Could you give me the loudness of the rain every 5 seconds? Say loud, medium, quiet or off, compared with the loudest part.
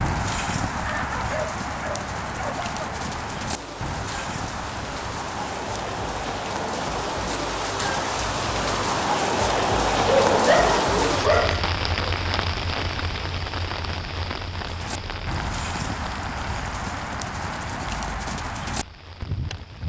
medium, loud, loud, quiet.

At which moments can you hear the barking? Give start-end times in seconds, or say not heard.
0.8-2.7, 10.1-11.7.